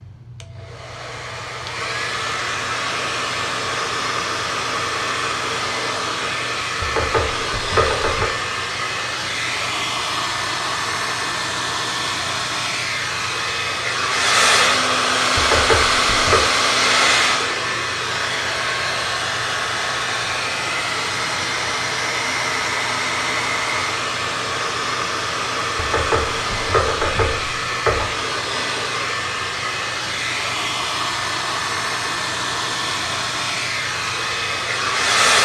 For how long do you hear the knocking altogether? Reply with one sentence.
You can hear the knocking for 5 seconds altogether.